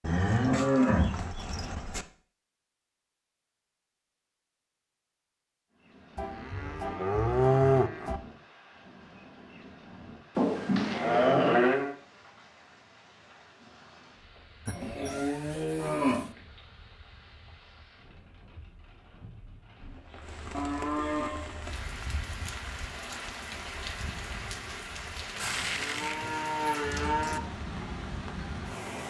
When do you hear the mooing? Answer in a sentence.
The mooing can be heard from 0.0 to 2.0 s, from 6.2 to 8.2 s, from 10.3 to 11.9 s, from 14.7 to 16.3 s, from 20.5 to 21.6 s and from 25.4 to 27.4 s.